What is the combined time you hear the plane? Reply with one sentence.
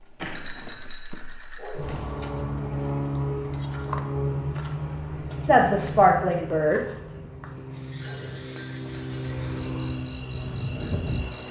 The plane can be heard for 10 seconds in total.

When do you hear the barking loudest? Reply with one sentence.
The loudest moment of the barking is at 2 seconds.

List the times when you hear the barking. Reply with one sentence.
The barking can be heard from 1.1 to 2.0 s and from 7.5 to 8.5 s.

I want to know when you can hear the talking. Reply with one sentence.
The talking can be heard from 5.3 to 6.8 s.